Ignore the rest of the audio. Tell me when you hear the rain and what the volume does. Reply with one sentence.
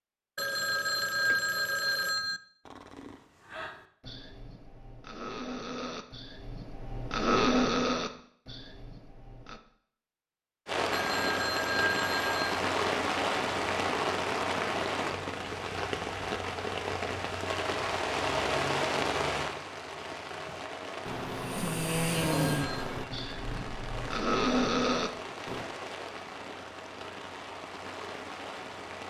The rain can be heard from 10.7 to 29.0 s, getting quieter.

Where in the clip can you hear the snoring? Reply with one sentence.
You can hear the snoring from 2.6 to 9.6 s and from 20.4 to 25.6 s.